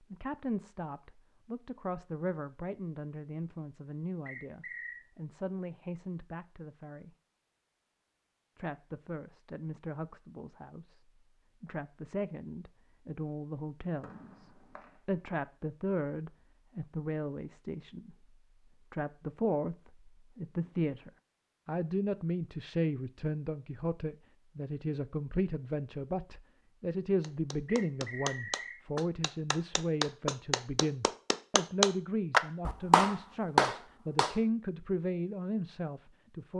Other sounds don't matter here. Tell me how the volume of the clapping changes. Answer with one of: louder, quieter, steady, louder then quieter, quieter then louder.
louder.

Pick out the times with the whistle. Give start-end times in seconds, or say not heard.
4.2-5.0, 14.0-14.9, 27.6-28.8.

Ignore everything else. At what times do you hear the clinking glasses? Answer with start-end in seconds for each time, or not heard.
not heard.